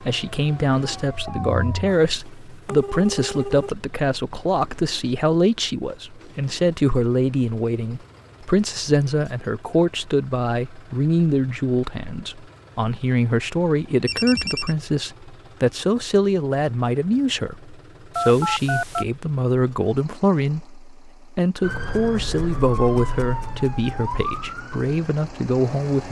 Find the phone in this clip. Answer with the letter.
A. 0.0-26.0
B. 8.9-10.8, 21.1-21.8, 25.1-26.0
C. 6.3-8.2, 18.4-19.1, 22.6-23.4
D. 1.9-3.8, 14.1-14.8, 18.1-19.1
D.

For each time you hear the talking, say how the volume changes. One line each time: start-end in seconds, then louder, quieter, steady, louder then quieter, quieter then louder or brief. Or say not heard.
0.0-26.0 steady.